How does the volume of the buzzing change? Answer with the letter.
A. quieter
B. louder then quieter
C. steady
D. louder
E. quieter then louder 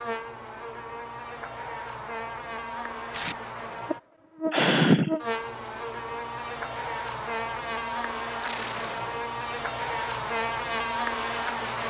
D.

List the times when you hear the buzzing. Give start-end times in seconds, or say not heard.
0.0-11.8.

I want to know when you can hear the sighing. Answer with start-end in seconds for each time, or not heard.
4.5-5.2.